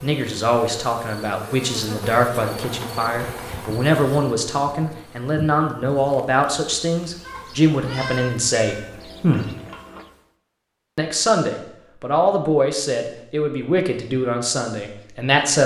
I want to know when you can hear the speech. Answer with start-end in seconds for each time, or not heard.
0.0-9.5, 10.9-15.6.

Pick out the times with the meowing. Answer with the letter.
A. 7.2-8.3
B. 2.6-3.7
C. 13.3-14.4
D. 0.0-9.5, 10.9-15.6
A.